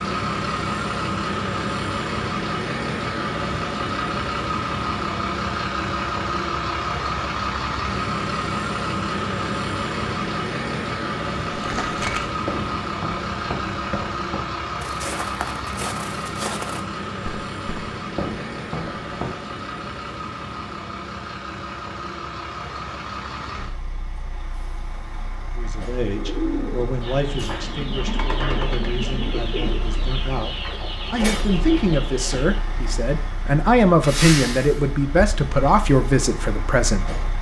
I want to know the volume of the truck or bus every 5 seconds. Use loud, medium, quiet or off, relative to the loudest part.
loud, loud, loud, medium, medium, quiet, medium, medium.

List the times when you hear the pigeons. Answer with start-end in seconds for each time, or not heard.
26.1-32.6.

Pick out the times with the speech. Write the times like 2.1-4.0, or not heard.
25.6-37.1.